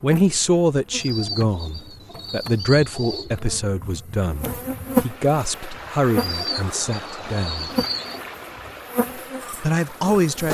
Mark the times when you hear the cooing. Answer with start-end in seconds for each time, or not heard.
1.0-3.4, 6.2-8.2.